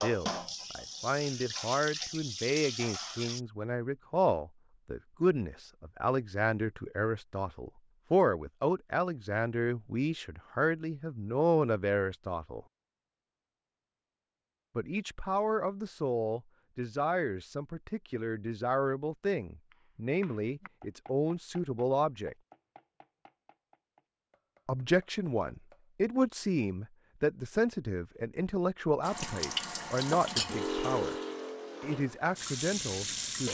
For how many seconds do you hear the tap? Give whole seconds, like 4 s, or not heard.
8 s.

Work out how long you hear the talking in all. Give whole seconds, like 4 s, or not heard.
28 s.